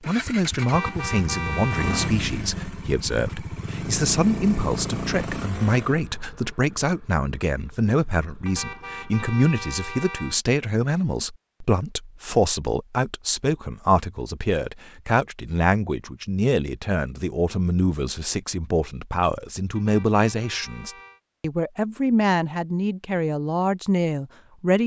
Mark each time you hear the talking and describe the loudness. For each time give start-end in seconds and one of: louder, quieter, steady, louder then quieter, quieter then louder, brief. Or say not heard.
0.1-24.8 steady.